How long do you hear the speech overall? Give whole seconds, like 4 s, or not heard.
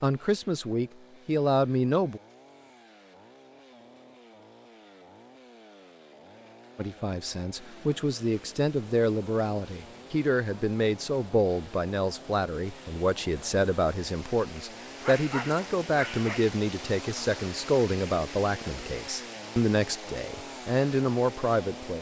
17 s.